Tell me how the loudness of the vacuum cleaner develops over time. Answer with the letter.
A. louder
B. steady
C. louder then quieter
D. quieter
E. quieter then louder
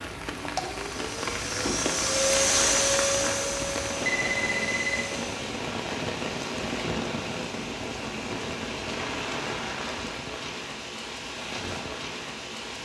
C.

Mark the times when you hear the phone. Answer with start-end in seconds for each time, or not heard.
4.0-5.0.